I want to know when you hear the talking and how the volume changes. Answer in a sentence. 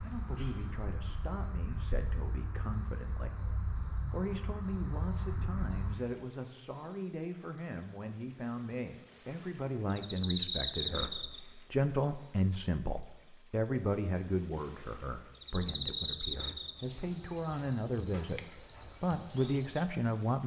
You can hear the talking from 0.0 to 20.4 s, getting louder.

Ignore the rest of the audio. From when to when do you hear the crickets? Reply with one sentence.
The crickets can be heard from 0.0 to 20.2 s.